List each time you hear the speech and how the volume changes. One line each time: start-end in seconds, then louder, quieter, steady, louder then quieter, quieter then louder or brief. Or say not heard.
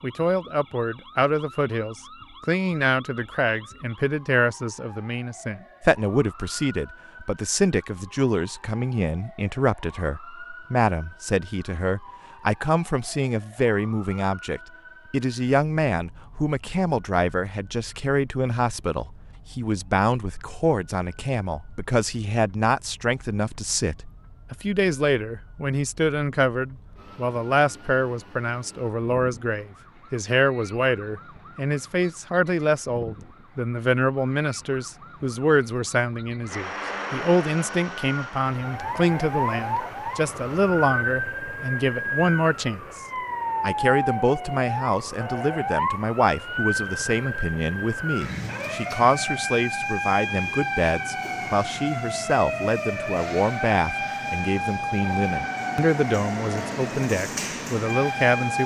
0.0-43.0 steady
43.6-58.6 steady.